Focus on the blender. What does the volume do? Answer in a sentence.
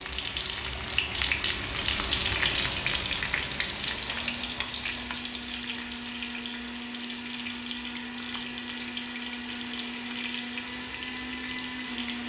The volume of the blender goes up.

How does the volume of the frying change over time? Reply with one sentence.
The loudness of the frying goes down.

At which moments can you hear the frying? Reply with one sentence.
You can hear the frying from 0.0 to 12.2 s.